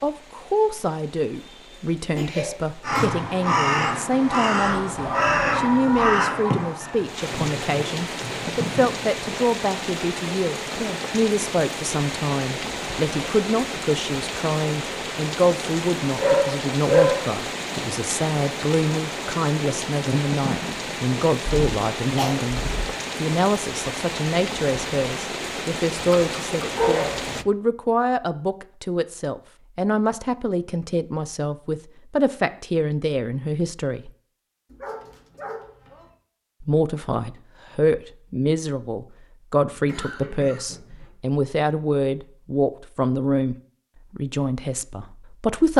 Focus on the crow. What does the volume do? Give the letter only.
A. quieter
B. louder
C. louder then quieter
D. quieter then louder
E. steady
A.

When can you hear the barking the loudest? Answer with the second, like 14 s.
17 s.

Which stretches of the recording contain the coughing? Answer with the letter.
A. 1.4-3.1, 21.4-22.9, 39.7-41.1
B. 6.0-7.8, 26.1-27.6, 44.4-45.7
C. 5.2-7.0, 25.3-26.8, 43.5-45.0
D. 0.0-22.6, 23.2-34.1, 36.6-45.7
A.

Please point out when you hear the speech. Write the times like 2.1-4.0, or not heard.
0.0-22.6, 23.2-34.1, 36.6-45.7.